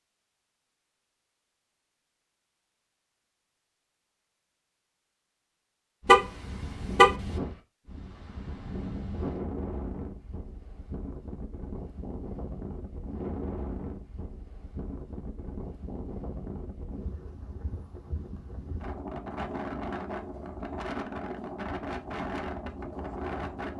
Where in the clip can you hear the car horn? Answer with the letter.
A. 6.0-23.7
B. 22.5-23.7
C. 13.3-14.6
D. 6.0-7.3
D.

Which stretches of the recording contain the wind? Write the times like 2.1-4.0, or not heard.
6.0-23.7.